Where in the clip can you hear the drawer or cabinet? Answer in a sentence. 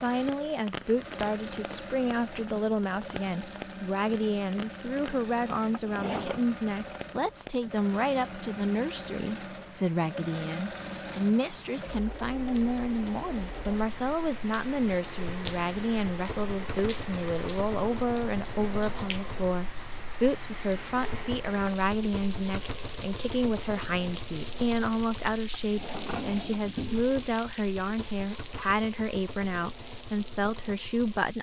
You can hear the drawer or cabinet from 5.6 to 6.4 s and from 25.4 to 27.1 s.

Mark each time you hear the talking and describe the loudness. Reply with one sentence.
The talking can be heard from 0.0 to 31.3 s, at a steady volume.